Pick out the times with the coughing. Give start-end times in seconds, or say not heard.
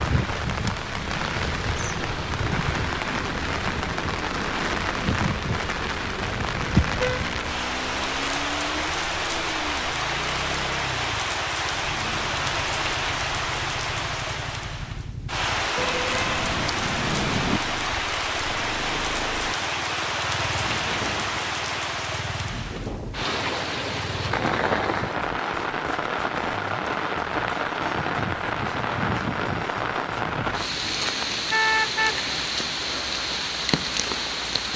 not heard.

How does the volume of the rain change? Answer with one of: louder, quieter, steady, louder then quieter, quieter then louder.
steady.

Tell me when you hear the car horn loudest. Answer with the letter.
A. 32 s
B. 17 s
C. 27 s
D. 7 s
A.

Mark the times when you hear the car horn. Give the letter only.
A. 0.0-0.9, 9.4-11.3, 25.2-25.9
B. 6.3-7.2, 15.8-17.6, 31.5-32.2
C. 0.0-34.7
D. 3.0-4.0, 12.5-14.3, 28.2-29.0
B.